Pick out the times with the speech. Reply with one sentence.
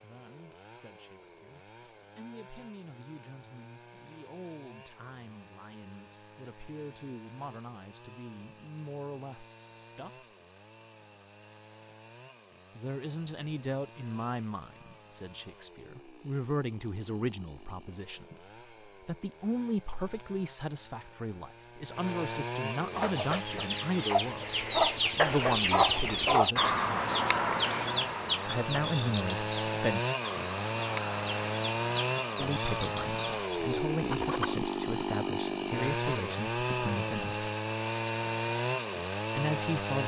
You can hear the speech from 0.0 to 10.2 s, from 12.8 to 26.9 s, from 28.4 to 30.0 s, from 32.4 to 37.5 s and from 39.4 to 40.0 s.